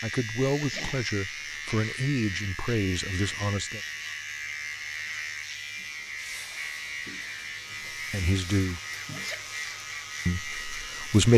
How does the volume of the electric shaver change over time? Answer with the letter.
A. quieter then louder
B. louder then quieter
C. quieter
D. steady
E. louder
D.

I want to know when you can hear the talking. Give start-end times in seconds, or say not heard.
0.0-3.8, 8.1-8.8, 10.2-11.3.